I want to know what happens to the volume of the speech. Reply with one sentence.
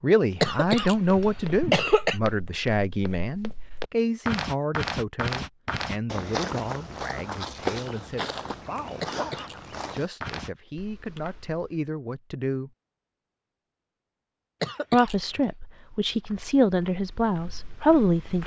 The volume of the speech goes down, then up.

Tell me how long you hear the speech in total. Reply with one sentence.
The speech can be heard for 16 seconds in total.